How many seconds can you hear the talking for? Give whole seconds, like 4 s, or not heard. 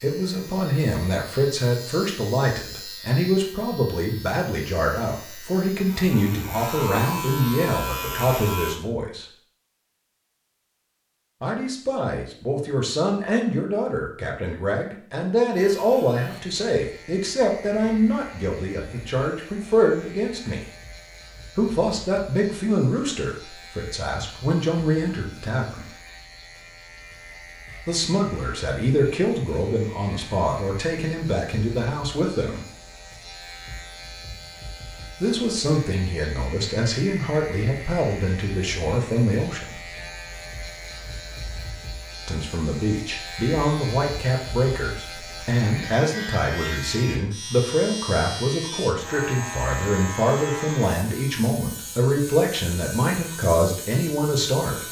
45 s.